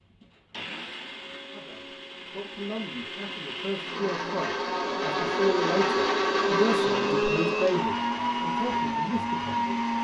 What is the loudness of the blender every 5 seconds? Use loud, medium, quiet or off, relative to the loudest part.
medium, loud.